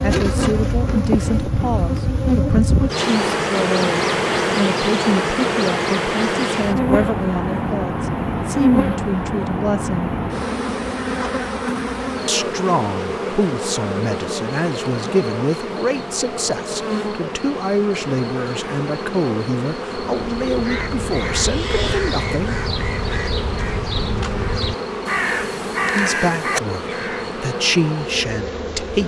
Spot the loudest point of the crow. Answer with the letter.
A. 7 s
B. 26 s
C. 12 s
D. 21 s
B.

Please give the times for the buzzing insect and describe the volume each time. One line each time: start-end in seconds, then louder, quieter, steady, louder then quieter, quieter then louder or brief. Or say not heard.
0.0-29.0 quieter.